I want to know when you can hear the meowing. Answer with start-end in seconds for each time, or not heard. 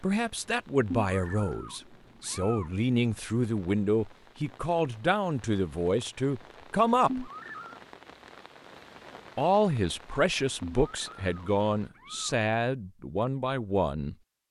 0.9-2.7, 7.0-7.8, 10.6-12.4.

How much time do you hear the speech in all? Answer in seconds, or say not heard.
12 s.